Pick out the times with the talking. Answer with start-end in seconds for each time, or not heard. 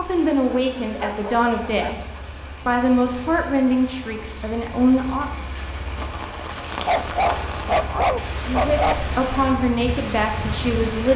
0.0-2.0, 2.6-5.3, 8.4-11.1.